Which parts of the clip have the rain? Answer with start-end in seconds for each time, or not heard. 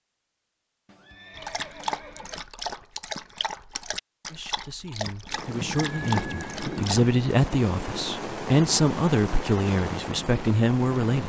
5.2-11.2.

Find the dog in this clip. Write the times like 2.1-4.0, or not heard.
1.4-7.1.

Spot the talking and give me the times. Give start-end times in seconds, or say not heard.
4.3-11.2.